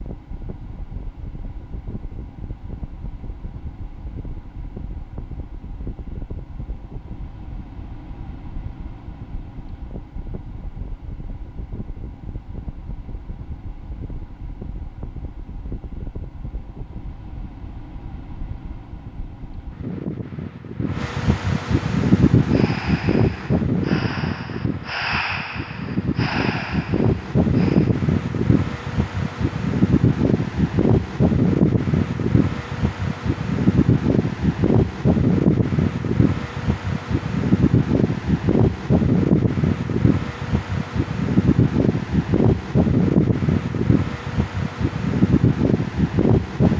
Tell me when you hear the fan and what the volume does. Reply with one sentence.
You can hear the fan from 0.0 to 46.7 s, getting louder.